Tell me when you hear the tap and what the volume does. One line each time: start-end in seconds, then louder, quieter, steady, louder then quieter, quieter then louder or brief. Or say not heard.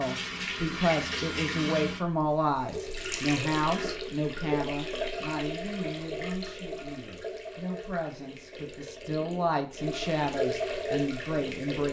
0.0-11.8 quieter then louder.